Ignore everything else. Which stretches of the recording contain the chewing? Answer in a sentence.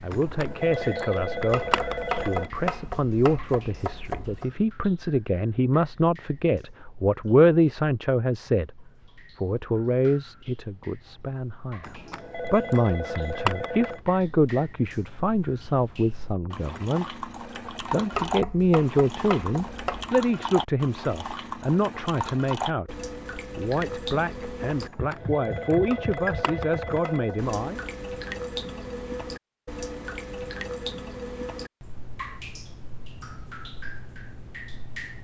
You can't hear the chewing here.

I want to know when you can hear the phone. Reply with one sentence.
You can hear the phone from 0.1 to 2.5 s, from 11.8 to 14.0 s and from 24.8 to 27.5 s.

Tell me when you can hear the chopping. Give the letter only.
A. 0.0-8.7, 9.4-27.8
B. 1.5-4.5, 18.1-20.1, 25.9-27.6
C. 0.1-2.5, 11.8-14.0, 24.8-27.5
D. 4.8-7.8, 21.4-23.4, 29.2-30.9
B.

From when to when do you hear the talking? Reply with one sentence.
You can hear the talking from 0.0 to 8.7 s and from 9.4 to 27.8 s.